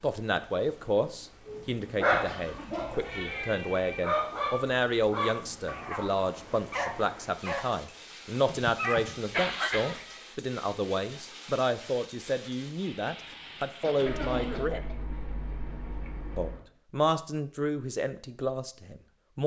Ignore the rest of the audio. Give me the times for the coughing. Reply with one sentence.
You can hear the coughing from 2.2 to 2.9 s, from 8.4 to 10.1 s and from 13.8 to 14.9 s.